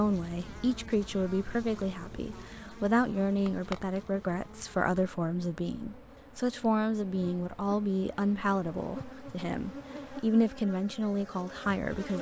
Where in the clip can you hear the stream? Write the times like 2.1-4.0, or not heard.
not heard.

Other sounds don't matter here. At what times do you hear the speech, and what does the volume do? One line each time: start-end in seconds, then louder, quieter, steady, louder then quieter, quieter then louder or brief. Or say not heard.
0.0-12.1 steady.